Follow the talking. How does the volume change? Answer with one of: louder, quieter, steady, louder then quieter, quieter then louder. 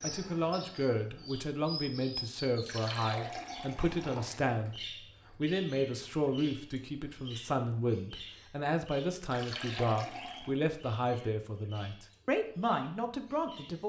steady.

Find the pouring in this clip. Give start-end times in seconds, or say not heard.
2.6-4.4, 9.3-10.6.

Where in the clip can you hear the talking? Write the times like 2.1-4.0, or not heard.
0.0-13.8.